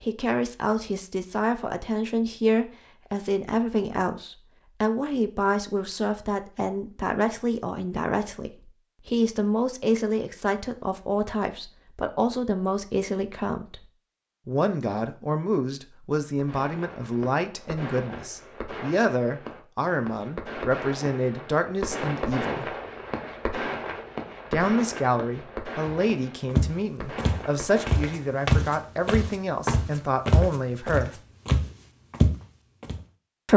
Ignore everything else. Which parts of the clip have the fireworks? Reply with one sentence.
You can hear the fireworks from 16.4 to 28.4 s.